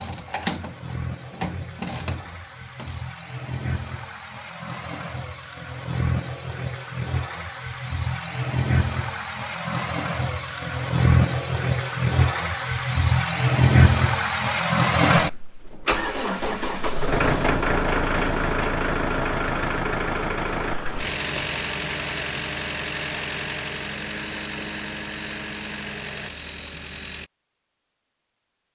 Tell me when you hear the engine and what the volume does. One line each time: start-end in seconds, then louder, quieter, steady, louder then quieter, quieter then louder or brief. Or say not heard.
0.0-27.3 louder then quieter.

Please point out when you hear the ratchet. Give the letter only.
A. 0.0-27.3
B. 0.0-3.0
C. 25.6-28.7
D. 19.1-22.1
B.